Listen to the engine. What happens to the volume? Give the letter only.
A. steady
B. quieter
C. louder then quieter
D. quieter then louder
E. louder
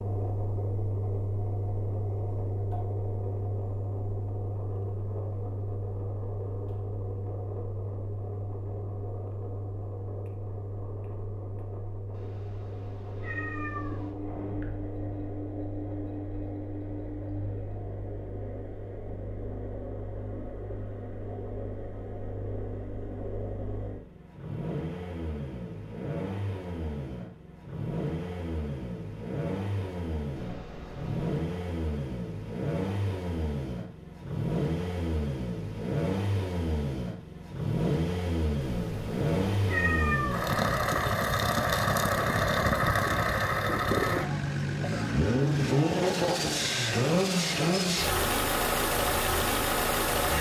E.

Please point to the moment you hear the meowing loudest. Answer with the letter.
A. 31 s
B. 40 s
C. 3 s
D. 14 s
B.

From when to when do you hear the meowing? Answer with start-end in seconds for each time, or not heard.
12.1-14.2, 30.4-31.4, 38.6-40.5.